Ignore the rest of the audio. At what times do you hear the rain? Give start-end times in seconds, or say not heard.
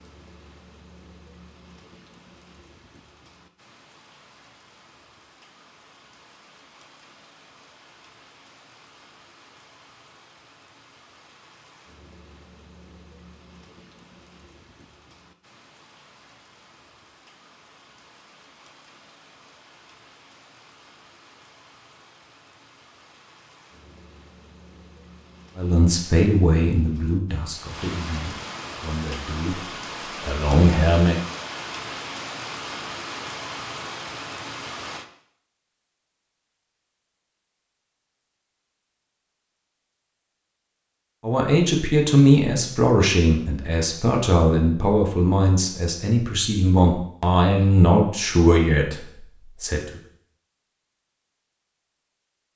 0.0-35.0.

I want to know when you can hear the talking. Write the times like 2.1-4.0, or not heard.
25.6-31.2, 41.2-50.0.